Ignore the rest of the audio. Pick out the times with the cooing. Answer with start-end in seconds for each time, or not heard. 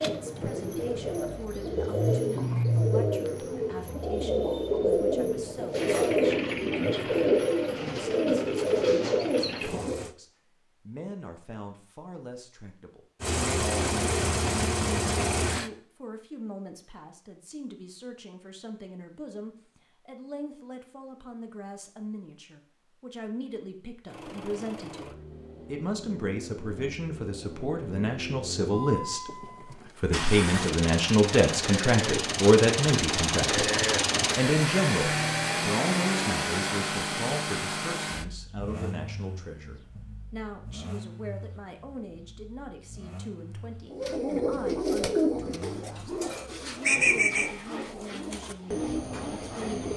0.0-10.1, 43.9-49.9.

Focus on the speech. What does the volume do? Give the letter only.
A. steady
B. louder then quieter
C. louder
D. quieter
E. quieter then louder
B.